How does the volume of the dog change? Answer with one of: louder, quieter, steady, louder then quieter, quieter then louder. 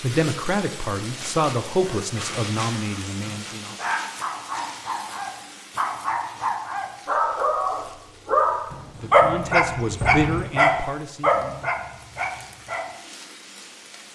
louder.